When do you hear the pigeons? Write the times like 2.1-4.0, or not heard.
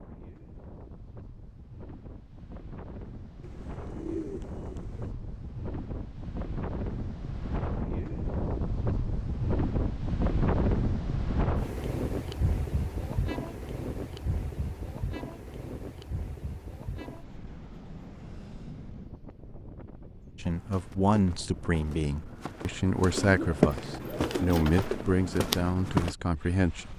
3.4-5.2, 23.1-24.9.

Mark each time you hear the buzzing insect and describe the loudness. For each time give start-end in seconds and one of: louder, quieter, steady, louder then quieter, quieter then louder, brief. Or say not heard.
not heard.